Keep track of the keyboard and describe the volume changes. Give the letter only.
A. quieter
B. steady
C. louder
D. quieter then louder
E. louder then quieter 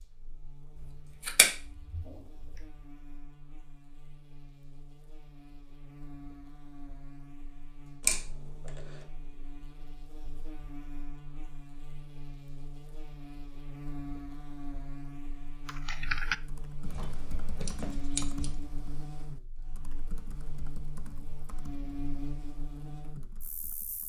A.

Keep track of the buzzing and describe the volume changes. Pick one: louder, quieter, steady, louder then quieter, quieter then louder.
louder.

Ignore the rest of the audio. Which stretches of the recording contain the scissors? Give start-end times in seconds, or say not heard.
1.2-2.6, 8.0-8.8, 16.8-18.6.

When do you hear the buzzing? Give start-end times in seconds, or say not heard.
0.0-24.0.